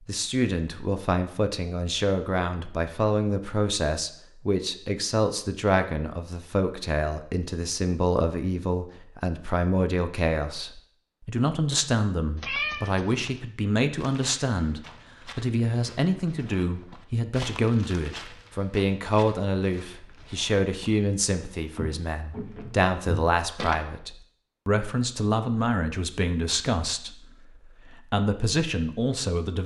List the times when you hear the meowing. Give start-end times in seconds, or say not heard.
12.3-13.3.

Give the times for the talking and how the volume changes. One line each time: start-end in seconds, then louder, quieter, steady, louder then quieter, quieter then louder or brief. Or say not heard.
0.1-29.6 steady.